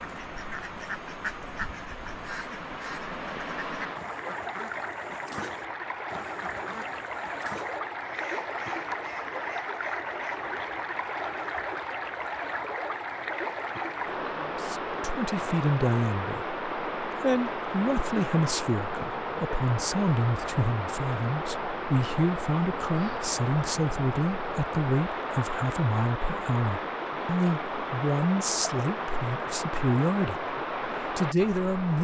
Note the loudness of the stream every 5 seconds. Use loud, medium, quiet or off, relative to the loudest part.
medium, loud, loud, loud, loud, loud, loud.